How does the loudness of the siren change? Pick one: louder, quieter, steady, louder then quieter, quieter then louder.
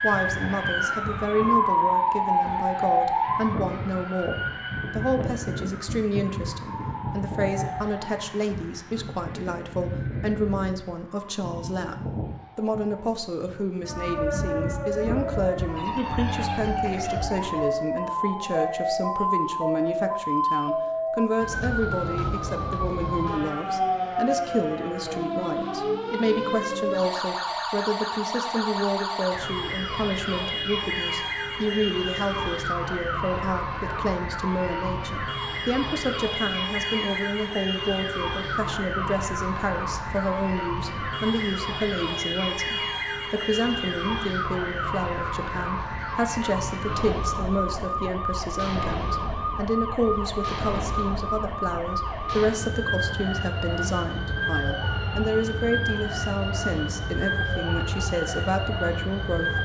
steady.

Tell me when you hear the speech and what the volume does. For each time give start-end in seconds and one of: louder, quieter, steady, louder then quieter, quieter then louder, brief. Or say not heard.
0.0-59.6 steady.